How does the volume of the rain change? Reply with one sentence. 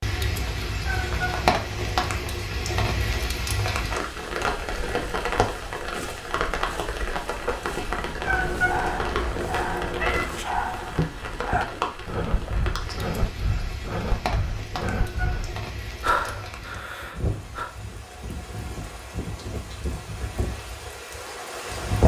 The loudness of the rain goes down.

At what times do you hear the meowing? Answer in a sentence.
You can hear the meowing from 0.8 to 2.5 s, from 8.2 to 10.2 s and from 14.8 to 15.4 s.